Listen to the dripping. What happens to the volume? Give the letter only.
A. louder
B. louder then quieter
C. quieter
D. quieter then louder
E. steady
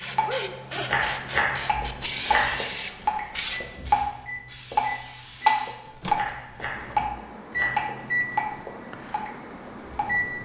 B.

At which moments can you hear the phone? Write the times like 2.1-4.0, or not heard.
not heard.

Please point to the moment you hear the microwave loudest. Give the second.
8 s.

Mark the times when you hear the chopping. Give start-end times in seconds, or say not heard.
0.8-2.6, 6.0-7.9.